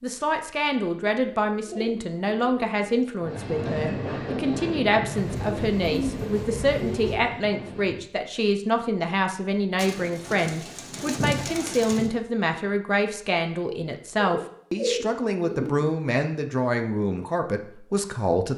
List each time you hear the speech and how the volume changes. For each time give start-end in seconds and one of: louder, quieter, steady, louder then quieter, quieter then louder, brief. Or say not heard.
0.0-18.5 steady.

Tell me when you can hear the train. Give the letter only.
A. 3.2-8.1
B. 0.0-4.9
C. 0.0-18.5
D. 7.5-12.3
A.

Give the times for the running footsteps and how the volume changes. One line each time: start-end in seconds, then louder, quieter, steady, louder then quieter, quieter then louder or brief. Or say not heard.
not heard.